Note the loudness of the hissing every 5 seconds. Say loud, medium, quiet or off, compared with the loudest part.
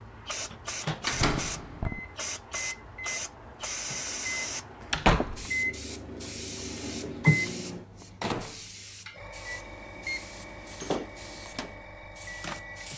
loud, medium, medium.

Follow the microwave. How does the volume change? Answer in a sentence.
The loudness of the microwave goes up, then down.